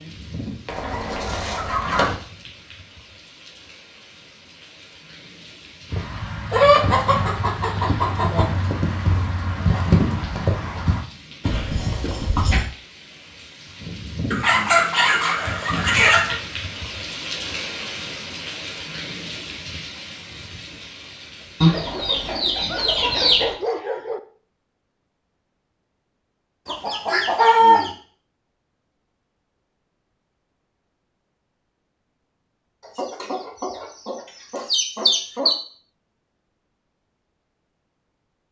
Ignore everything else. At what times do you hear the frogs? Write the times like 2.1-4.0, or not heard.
not heard.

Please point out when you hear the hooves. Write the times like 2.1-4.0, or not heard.
5.8-12.7.